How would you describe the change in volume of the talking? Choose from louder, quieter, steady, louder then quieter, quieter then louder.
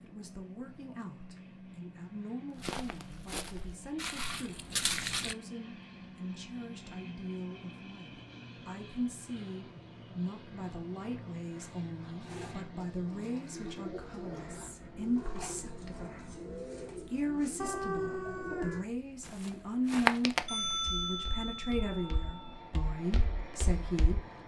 louder.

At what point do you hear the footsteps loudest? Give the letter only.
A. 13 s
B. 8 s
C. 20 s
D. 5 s
C.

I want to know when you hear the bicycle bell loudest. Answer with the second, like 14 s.
21 s.